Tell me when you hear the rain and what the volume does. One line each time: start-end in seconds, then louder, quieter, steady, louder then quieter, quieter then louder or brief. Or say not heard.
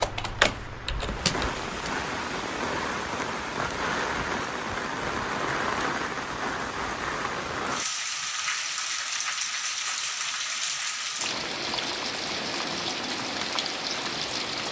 0.0-14.6 steady.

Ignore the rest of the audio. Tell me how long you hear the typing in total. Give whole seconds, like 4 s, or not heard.
2 s.